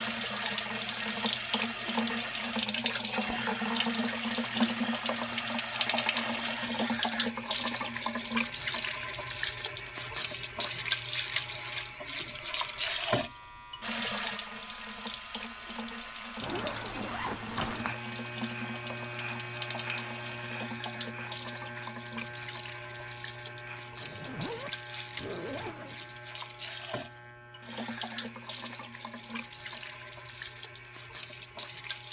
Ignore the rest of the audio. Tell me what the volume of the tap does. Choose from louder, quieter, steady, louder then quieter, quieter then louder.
quieter.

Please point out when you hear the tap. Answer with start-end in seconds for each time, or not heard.
0.0-32.0.